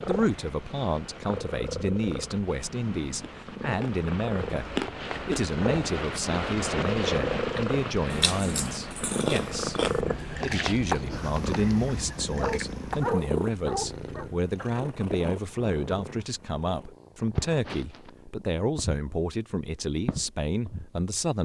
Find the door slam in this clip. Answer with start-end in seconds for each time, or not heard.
not heard.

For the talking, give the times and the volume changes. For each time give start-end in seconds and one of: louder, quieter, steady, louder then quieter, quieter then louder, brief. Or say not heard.
0.1-21.3 steady.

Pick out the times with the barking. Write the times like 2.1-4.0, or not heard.
12.3-14.3.